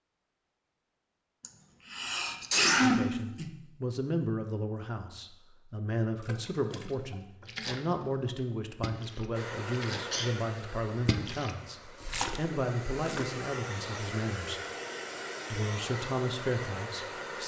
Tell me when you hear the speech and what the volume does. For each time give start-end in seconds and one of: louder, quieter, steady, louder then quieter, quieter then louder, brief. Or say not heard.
2.8-14.6 steady
15.5-17.4 brief.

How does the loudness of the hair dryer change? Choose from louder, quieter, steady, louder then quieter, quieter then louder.
quieter then louder.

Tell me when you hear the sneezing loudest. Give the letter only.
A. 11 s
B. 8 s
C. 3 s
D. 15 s
C.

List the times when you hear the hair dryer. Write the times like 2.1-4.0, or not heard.
9.3-17.4.